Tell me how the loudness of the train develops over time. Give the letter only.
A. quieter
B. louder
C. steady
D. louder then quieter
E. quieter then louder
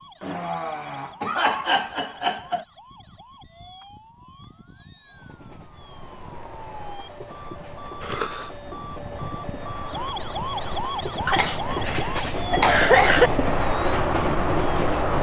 B.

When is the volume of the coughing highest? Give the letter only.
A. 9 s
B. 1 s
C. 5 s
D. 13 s
D.